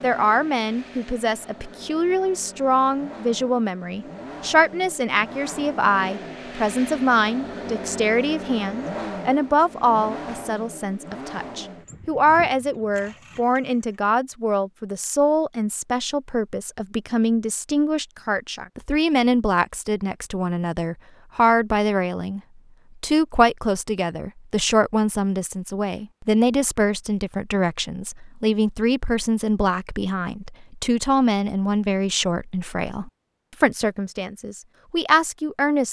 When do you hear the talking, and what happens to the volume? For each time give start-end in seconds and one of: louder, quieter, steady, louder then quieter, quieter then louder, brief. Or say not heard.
0.0-22.4 steady
23.0-35.8 steady.